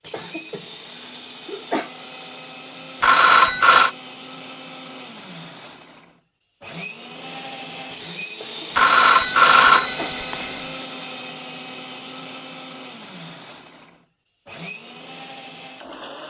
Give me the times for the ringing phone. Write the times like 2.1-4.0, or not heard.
3.0-3.9, 8.8-10.6.